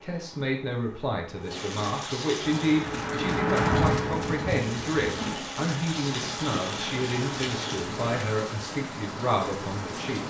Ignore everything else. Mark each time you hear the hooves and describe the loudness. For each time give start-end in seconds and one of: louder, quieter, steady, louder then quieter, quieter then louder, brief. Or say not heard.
2.4-8.2 quieter.